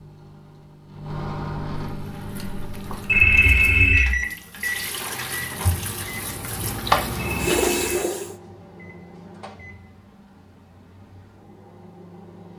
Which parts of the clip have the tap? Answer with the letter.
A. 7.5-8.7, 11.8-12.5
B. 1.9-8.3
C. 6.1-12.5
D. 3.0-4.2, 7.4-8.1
B.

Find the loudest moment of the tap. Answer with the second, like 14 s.
7 s.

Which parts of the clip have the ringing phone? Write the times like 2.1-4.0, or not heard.
3.0-4.2, 7.4-8.1.